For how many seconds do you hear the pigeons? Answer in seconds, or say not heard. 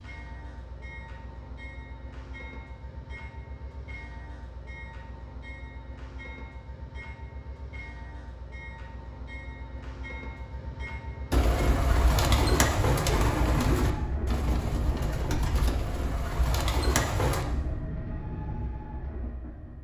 6 s.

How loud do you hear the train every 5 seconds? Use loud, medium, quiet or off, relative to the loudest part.
medium, medium, loud, loud.